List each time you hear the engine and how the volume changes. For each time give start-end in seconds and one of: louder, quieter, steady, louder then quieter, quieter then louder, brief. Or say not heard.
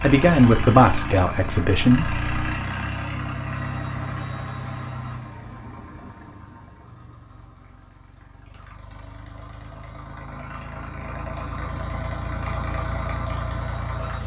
0.0-14.2 quieter then louder.